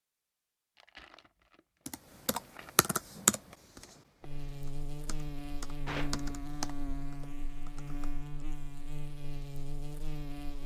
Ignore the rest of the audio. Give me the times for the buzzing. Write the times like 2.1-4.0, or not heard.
4.2-10.6.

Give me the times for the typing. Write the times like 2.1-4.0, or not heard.
1.9-8.4.